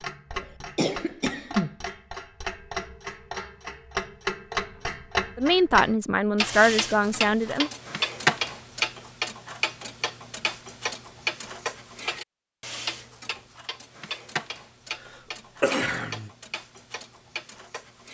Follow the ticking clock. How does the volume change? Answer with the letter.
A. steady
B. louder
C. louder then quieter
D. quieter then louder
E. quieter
C.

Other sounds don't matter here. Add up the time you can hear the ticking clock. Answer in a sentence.
The ticking clock can be heard for 18 seconds in total.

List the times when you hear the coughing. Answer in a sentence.
The coughing can be heard from 0.3 to 1.8 s and from 15.0 to 16.3 s.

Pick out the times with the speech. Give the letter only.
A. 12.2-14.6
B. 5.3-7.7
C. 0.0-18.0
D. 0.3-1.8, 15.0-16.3
B.